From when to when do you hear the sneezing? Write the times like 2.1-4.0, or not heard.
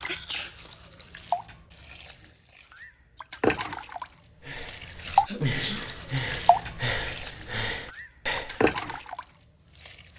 0.1-0.6, 5.2-5.9.